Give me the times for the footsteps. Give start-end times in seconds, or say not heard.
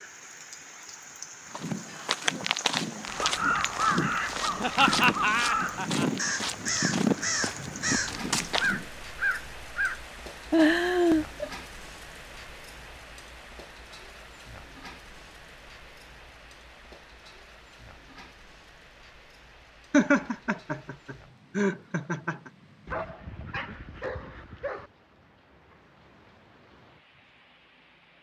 1.5-8.9.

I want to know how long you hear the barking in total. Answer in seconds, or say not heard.
2 s.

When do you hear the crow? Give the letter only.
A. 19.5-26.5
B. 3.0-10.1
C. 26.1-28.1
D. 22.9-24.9
B.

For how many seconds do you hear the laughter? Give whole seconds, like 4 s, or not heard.
5 s.